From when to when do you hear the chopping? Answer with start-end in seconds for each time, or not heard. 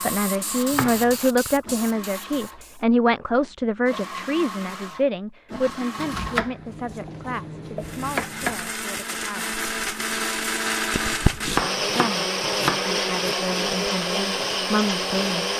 0.7-1.1, 6.0-8.7, 11.3-13.3.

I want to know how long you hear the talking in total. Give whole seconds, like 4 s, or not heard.
13 s.